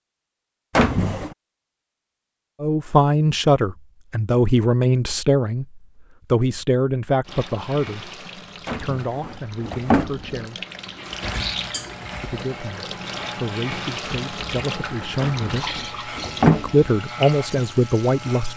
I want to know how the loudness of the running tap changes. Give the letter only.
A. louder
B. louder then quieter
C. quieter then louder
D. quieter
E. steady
A.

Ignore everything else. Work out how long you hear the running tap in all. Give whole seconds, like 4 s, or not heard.
11 s.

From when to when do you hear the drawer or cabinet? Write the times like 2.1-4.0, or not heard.
0.8-1.4, 8.7-10.4, 15.2-16.9.